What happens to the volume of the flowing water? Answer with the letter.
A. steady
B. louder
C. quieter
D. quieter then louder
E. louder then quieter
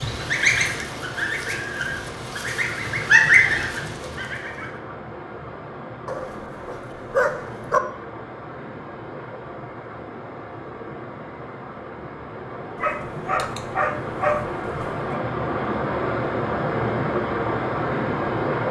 B.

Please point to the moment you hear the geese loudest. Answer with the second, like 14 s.
3 s.